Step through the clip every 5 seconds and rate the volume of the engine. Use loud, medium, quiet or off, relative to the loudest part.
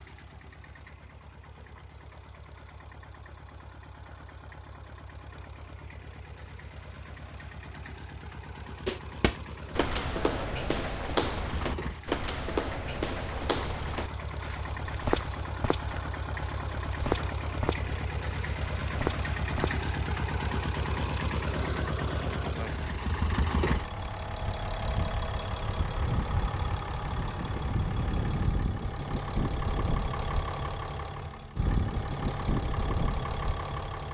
quiet, quiet, medium, loud, loud, loud, loud.